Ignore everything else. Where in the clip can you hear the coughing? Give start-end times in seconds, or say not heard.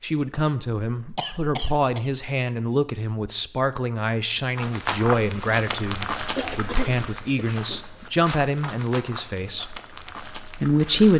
1.1-2.1, 6.3-8.2.